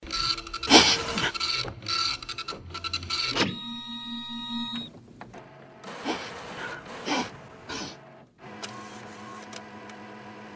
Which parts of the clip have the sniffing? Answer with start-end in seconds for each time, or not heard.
0.7-1.3, 6.0-8.0.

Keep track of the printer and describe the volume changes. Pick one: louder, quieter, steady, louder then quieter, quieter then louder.
quieter.